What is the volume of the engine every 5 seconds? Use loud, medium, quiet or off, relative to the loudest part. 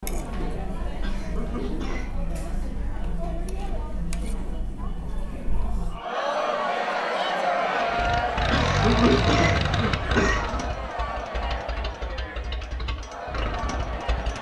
off, loud, medium.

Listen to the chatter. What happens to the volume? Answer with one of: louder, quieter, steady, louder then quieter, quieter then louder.
louder then quieter.